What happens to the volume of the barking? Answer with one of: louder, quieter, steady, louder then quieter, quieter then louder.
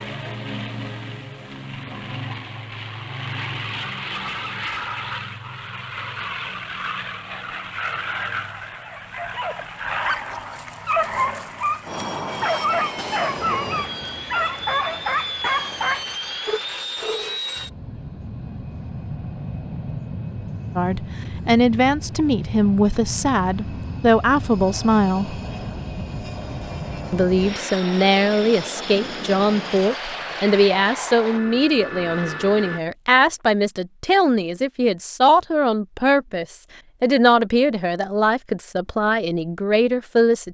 louder.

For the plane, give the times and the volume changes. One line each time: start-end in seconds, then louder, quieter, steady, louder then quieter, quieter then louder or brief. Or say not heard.
0.0-32.8 steady.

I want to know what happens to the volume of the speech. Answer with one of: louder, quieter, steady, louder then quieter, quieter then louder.
steady.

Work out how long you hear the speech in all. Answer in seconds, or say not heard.
18 s.